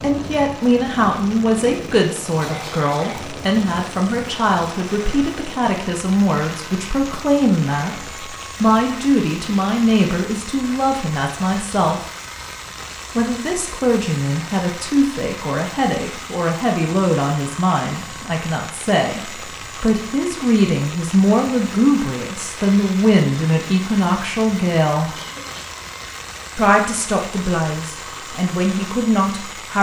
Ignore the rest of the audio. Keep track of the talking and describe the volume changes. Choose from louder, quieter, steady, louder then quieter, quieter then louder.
steady.